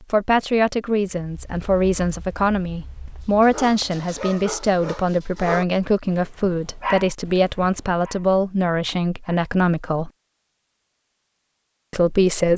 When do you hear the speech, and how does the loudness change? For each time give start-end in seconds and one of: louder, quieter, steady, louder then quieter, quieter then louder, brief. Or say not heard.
0.1-10.1 steady
11.9-12.5 brief.